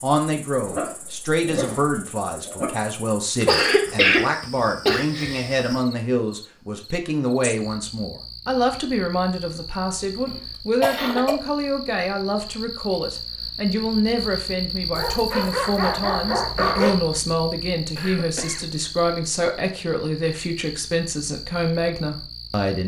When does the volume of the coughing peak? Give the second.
4 s.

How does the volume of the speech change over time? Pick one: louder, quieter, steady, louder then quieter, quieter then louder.
steady.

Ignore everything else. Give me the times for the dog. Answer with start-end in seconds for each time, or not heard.
0.7-2.6, 14.9-16.9.